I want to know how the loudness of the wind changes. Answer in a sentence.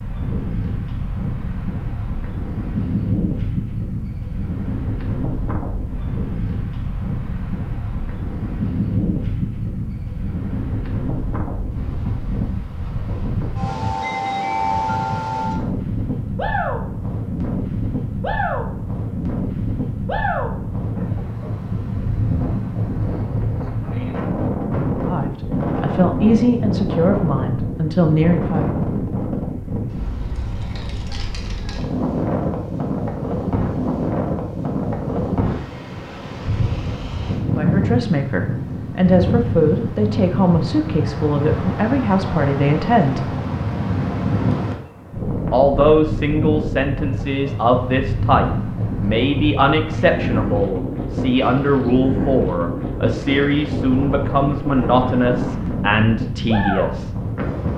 The loudness of the wind stays about the same.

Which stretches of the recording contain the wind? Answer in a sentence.
You can hear the wind from 0.0 to 57.7 s.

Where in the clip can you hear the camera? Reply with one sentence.
The camera can't be heard in this clip.